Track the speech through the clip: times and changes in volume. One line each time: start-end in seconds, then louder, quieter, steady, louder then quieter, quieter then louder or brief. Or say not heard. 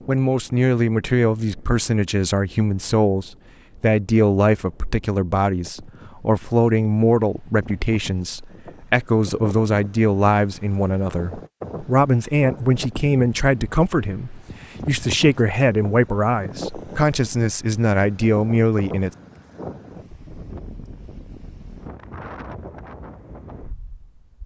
0.1-19.1 steady.